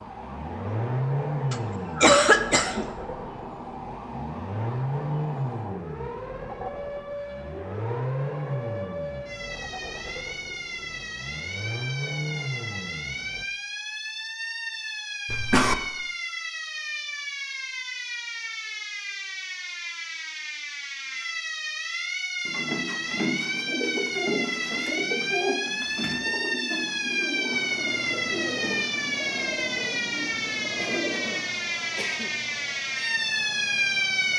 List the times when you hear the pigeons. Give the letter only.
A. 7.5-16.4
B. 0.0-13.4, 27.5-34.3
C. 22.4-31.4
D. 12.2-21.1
C.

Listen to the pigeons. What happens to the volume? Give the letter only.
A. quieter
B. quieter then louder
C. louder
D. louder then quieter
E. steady
A.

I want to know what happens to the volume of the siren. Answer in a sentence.
The loudness of the siren goes up.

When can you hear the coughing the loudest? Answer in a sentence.
The loudest moment of the coughing is at 2 seconds.